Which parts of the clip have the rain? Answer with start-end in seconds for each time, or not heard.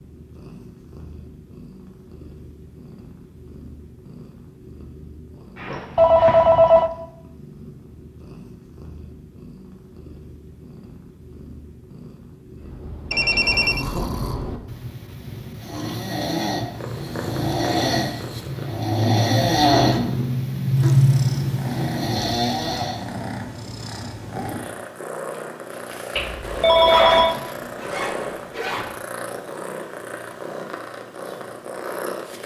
not heard.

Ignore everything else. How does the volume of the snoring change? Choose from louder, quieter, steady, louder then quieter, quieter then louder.
louder.